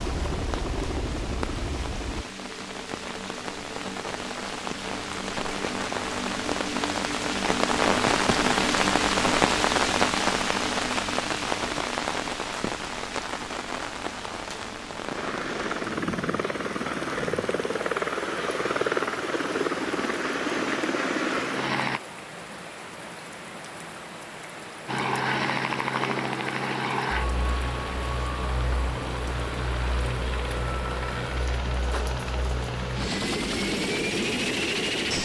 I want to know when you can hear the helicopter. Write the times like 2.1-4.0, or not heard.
0.0-2.2, 15.1-22.0, 24.9-35.1.